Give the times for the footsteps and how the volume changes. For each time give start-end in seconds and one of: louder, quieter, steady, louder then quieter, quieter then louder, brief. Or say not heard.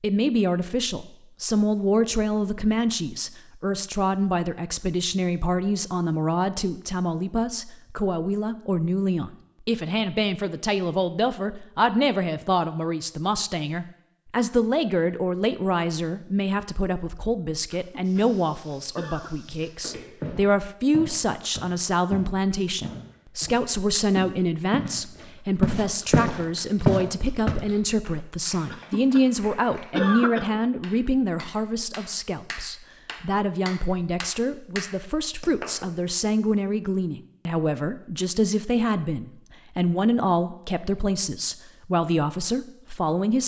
18.0-24.9 louder
25.6-27.6 brief.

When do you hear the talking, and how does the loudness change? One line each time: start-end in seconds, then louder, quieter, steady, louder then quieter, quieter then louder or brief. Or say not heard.
0.0-43.4 steady.